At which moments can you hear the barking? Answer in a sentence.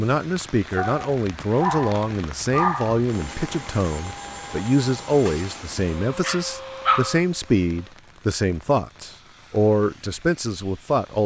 You can hear the barking from 0.8 to 3.0 s and from 5.8 to 7.2 s.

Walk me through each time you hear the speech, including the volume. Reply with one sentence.
You can hear the speech from 0.0 to 11.2 s, at a steady volume.